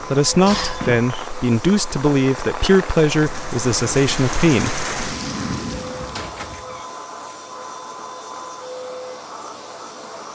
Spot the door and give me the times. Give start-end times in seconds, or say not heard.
0.5-1.3, 6.1-6.8.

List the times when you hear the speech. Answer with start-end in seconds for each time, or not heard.
0.0-4.8.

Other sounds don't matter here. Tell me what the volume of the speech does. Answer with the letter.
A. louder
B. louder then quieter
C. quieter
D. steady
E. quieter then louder
D.